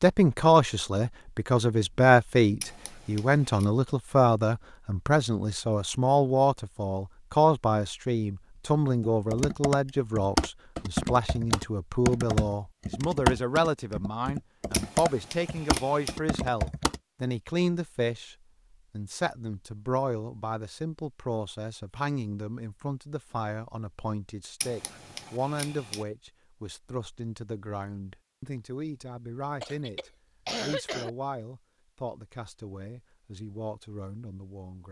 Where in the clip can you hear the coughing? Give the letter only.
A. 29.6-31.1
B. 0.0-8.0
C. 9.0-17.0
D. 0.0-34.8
A.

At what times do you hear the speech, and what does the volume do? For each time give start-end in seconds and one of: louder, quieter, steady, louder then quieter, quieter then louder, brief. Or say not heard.
0.0-34.8 quieter.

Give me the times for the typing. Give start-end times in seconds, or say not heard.
9.0-17.0.